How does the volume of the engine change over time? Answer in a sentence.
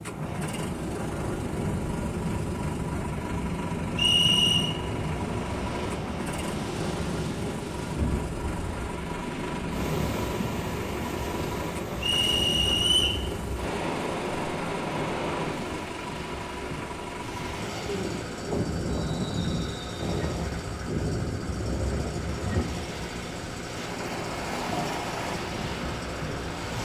The volume of the engine stays about the same.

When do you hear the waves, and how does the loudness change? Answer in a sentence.
You can hear the waves from 0.0 to 26.8 s, at a steady volume.